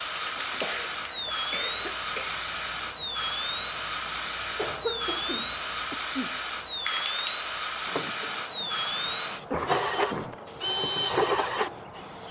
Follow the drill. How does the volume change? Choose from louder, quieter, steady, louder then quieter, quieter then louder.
steady.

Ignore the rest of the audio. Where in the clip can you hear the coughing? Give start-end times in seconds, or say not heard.
0.3-2.4, 4.5-6.3, 8.6-10.3.